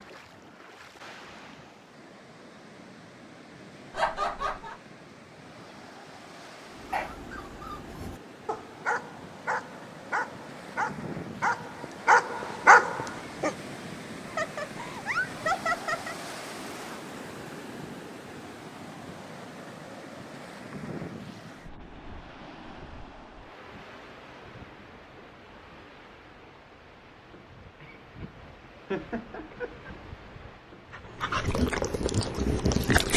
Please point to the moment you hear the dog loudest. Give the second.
13 s.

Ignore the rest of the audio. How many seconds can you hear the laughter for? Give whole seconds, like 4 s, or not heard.
4 s.